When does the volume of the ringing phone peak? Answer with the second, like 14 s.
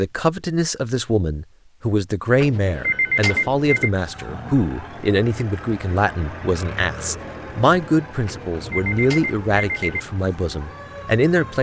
3 s.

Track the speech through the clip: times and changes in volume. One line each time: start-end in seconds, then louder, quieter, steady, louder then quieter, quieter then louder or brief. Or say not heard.
0.0-11.5 steady.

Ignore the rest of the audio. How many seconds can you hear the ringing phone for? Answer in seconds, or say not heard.
3 s.